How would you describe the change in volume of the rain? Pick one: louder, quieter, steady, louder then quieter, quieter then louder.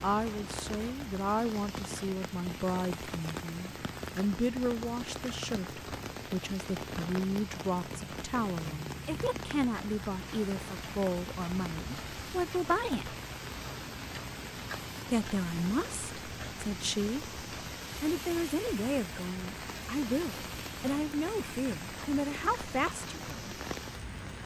steady.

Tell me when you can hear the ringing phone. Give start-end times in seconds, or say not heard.
not heard.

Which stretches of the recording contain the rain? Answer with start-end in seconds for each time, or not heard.
0.0-24.4.